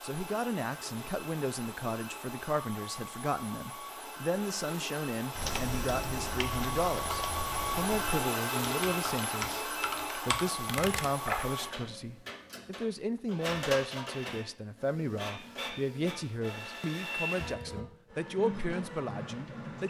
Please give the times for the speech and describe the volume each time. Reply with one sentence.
You can hear the speech from 0.0 to 19.8 s, at a steady volume.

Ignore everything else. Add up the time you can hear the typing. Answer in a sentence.
The typing can be heard for 6 seconds in total.